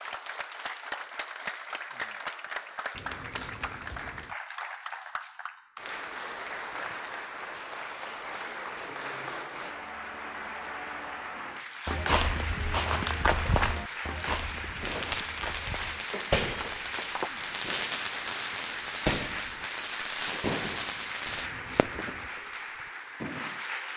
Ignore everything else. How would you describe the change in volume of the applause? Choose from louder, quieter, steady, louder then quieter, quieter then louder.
steady.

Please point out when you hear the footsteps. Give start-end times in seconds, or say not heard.
11.8-17.3.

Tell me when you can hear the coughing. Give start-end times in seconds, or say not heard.
2.9-4.3, 21.2-22.3.